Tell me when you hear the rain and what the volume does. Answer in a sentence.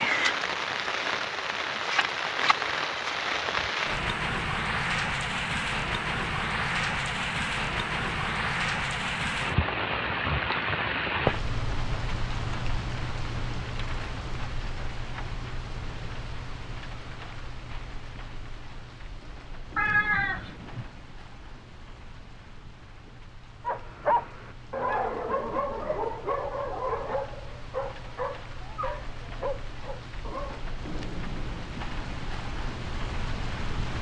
The rain can be heard from 0.0 to 33.9 s, getting quieter then louder.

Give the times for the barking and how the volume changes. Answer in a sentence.
The barking can be heard from 23.6 to 30.6 s, getting quieter.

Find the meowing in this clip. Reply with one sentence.
You can hear the meowing from 19.8 to 20.9 s.